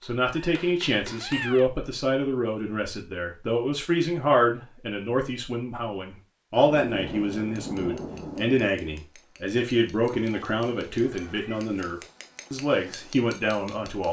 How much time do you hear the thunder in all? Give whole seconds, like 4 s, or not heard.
2 s.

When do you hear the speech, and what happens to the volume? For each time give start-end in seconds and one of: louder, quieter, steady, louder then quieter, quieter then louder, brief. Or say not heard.
0.0-14.0 steady.